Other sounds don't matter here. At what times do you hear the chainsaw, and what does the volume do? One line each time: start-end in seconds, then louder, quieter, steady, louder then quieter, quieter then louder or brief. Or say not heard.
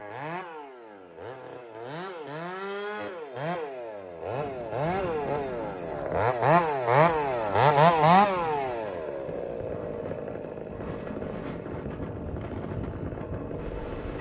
0.0-14.1 louder then quieter.